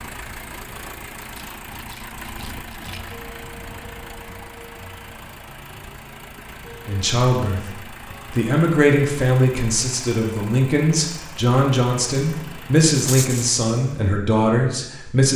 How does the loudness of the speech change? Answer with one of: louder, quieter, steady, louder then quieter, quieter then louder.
steady.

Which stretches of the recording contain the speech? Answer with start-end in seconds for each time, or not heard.
6.8-15.3.